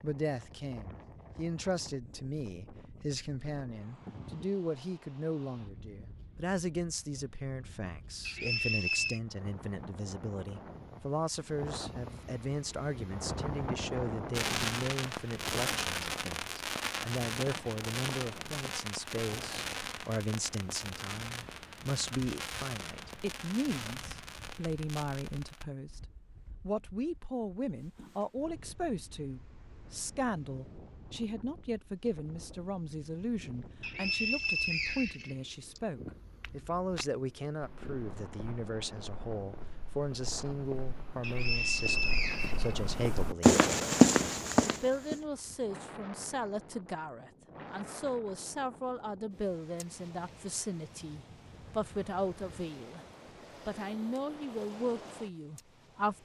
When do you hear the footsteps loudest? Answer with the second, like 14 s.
44 s.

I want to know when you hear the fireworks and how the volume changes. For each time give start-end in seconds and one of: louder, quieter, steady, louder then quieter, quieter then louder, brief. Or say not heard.
14.3-25.6 quieter.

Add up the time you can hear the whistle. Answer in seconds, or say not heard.
5 s.